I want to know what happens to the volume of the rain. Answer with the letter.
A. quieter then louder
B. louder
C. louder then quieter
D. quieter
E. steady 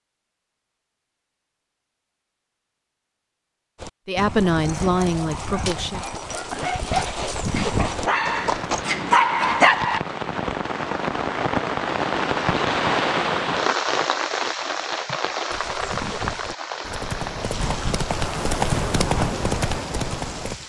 C.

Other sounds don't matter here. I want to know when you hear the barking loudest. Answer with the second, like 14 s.
10 s.